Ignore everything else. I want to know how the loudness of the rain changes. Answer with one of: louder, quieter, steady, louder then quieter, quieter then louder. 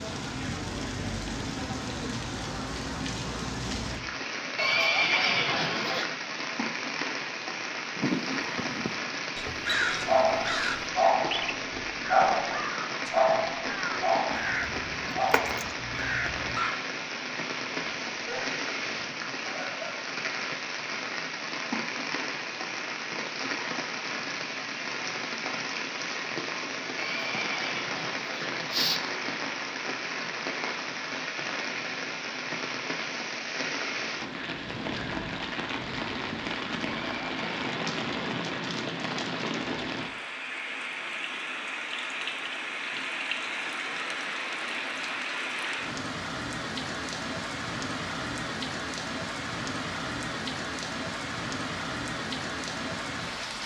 steady.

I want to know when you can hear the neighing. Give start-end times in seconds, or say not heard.
4.5-6.0, 26.9-29.0, 36.8-38.1.